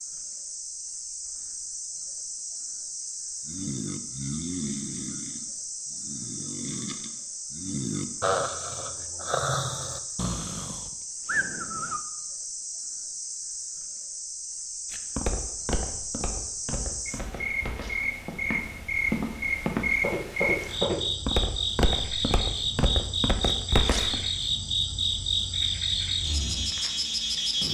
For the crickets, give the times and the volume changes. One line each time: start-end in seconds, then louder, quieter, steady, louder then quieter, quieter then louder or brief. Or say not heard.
0.0-27.6 louder.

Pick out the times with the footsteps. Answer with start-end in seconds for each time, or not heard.
14.9-24.3.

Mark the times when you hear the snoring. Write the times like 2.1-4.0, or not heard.
3.5-12.0.